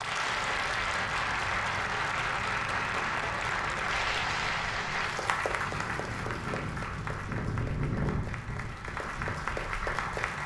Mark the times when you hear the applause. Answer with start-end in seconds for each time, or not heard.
0.0-10.4.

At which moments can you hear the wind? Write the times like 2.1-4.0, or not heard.
0.1-10.4.